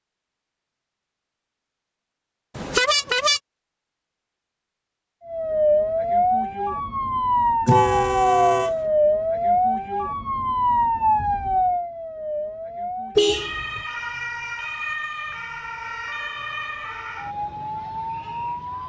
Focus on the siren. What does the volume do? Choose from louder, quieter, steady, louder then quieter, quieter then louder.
quieter.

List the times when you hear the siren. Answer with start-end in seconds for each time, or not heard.
5.2-18.8.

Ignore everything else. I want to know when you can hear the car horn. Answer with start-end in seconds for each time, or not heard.
2.5-3.4, 7.7-8.8, 13.2-13.8.